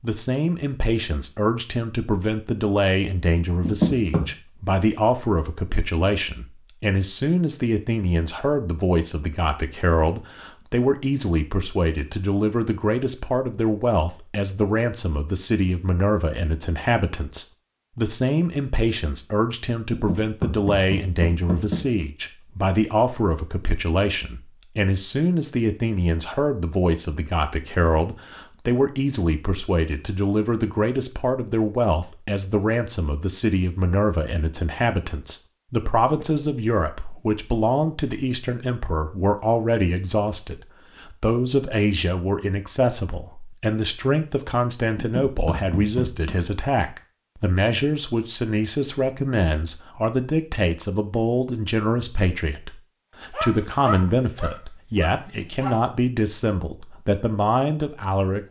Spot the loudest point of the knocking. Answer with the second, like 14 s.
4 s.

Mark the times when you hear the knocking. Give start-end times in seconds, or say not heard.
3.6-4.2, 19.9-21.9, 45.0-46.4.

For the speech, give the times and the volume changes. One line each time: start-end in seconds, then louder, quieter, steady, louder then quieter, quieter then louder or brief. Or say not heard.
0.0-58.4 steady.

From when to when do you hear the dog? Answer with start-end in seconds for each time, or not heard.
53.4-55.8.